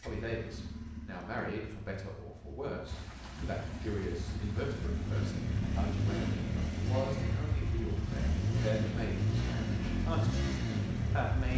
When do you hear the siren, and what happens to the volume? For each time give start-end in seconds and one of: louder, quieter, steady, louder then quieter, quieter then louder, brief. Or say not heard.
not heard.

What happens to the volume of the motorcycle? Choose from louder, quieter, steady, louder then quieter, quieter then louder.
louder.